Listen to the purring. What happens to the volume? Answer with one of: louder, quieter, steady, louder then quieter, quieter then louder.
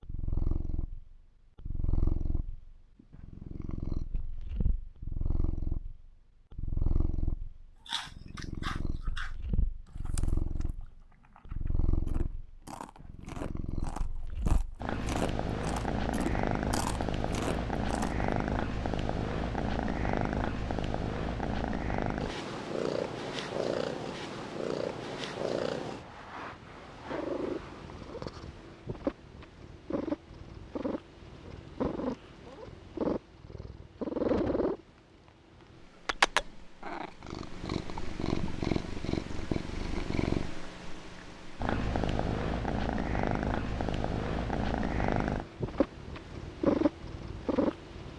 louder.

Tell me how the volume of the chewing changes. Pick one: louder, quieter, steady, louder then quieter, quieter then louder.
quieter then louder.